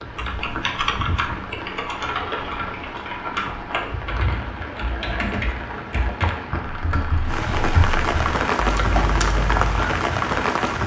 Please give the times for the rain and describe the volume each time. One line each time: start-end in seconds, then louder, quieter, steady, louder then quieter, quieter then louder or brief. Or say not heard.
0.0-10.8 louder.